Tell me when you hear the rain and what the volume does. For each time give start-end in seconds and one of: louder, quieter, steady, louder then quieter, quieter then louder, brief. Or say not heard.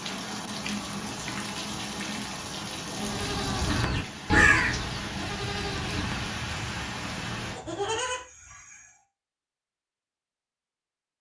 0.0-7.6 steady.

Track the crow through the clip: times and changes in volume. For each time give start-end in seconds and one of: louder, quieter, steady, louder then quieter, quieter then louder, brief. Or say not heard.
not heard.